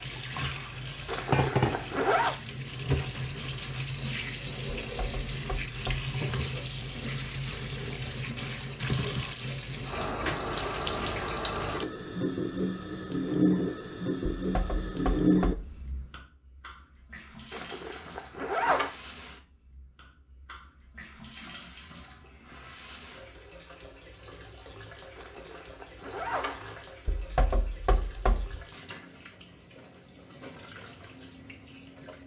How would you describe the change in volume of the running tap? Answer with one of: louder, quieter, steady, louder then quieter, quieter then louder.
quieter.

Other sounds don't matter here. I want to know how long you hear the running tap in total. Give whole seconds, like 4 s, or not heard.
32 s.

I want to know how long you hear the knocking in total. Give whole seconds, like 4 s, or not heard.
4 s.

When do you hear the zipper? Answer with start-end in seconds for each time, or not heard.
1.1-2.4, 17.5-18.9, 25.1-26.9.